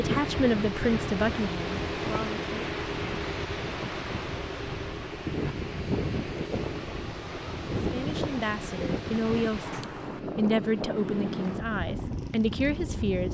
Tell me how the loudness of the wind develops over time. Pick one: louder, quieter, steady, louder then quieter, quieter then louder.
steady.